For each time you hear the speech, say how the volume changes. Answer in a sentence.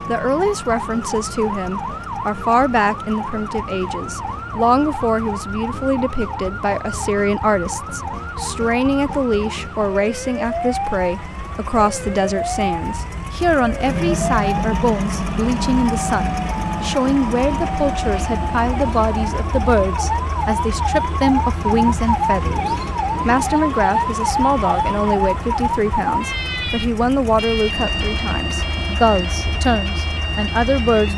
The speech can be heard from 0.1 to 31.1 s, at a steady volume.